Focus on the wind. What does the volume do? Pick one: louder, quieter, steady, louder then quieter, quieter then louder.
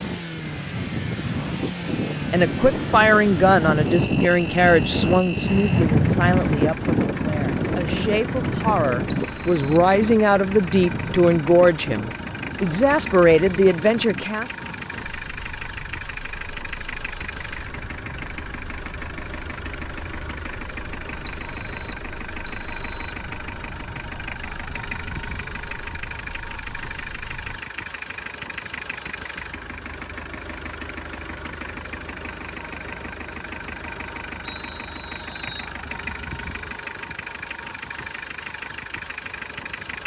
quieter.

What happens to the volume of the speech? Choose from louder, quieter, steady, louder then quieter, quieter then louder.
quieter then louder.